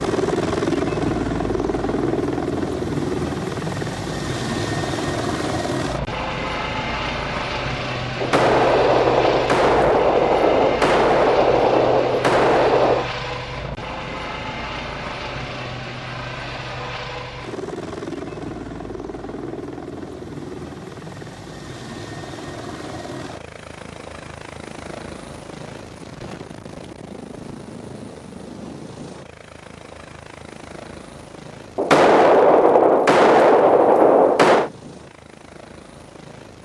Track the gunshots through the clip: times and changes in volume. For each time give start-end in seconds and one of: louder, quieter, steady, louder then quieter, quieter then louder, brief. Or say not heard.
8.2-13.1 steady
31.8-34.7 brief.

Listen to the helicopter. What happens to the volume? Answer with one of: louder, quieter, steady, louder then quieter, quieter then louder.
quieter.